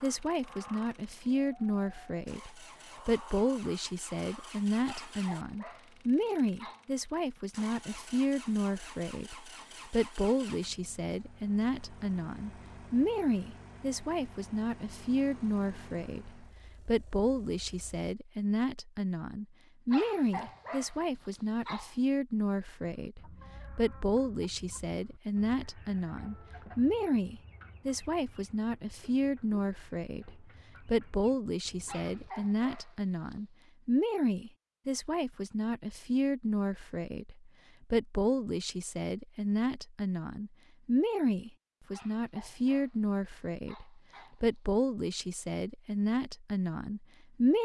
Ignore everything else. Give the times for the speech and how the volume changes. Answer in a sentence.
You can hear the speech from 0.0 to 47.6 s, at a steady volume.